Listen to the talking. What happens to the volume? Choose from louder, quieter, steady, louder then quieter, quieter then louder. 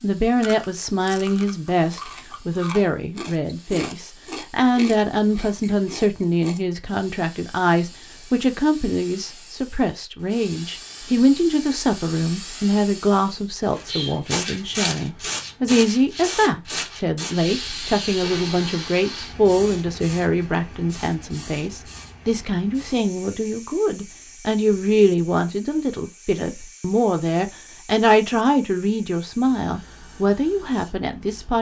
steady.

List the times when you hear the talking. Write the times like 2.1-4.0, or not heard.
0.0-31.5.